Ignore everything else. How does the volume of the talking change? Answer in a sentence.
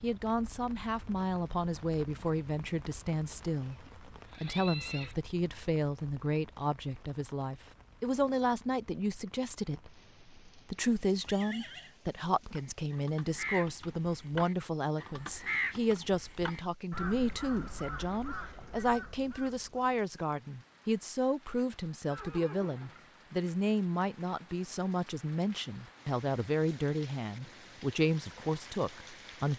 The loudness of the talking stays about the same.